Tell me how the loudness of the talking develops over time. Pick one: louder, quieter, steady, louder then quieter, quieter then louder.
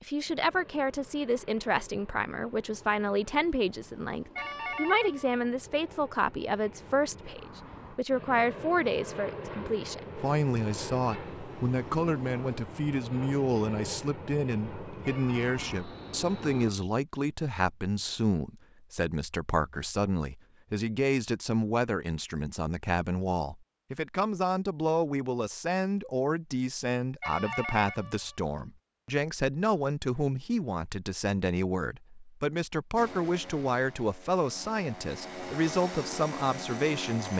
steady.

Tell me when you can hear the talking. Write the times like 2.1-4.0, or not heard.
0.0-37.3.